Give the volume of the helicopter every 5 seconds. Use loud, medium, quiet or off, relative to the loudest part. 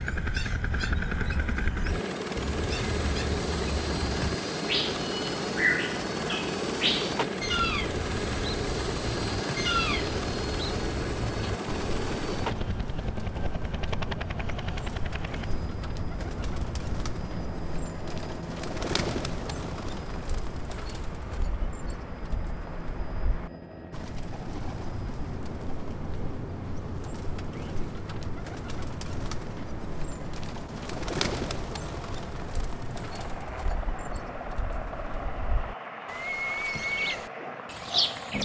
loud, loud, loud, medium, quiet, quiet, medium, medium.